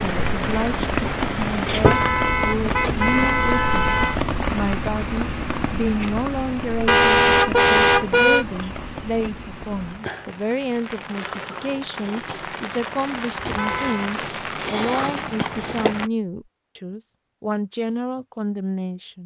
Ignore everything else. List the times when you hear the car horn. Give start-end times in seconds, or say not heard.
1.6-4.2, 6.8-8.4, 13.3-14.2.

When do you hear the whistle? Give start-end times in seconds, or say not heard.
not heard.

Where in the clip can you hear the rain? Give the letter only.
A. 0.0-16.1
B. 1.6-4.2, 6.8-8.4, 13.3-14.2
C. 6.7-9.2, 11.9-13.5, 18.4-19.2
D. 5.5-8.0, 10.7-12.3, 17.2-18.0
A.